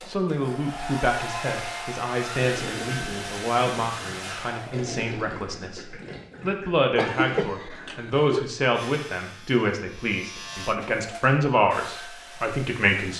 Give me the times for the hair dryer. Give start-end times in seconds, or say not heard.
0.0-5.0, 10.7-13.1.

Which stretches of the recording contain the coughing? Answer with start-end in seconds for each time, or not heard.
7.0-8.5.